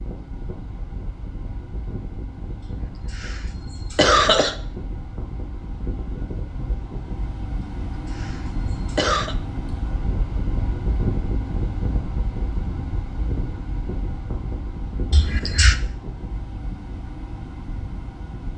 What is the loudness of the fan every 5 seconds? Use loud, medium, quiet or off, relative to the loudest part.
medium, loud, loud, medium.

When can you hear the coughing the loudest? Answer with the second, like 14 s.
4 s.